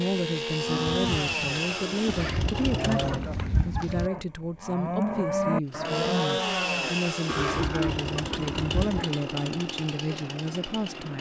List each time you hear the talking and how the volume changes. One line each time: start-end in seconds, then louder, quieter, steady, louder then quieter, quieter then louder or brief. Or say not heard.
0.0-11.1 steady.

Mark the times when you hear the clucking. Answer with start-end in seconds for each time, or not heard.
2.0-4.1, 7.5-9.1.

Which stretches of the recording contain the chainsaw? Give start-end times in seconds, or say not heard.
0.0-3.2, 5.7-11.1.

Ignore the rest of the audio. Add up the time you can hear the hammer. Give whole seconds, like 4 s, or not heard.
not heard.